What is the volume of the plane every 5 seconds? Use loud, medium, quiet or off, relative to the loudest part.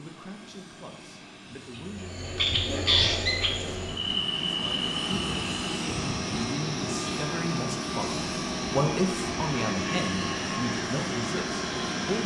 medium, loud, loud.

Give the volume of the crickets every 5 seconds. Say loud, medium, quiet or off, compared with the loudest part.
loud, quiet, quiet.